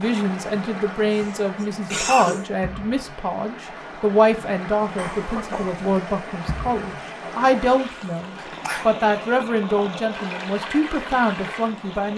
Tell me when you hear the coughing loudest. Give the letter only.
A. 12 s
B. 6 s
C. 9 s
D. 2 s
D.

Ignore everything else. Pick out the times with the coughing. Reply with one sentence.
You can hear the coughing from 1.1 to 2.5 s, from 5.0 to 5.8 s and from 8.3 to 8.9 s.